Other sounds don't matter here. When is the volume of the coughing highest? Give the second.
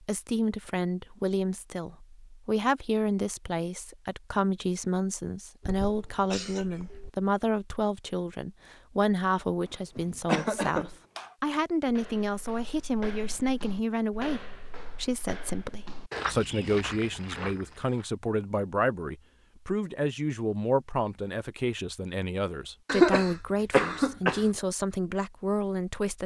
23 s.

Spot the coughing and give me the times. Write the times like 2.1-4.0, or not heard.
5.6-7.1, 9.9-11.3, 22.9-24.4.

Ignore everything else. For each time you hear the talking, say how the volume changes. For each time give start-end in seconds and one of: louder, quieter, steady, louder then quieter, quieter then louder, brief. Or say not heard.
0.0-26.2 steady.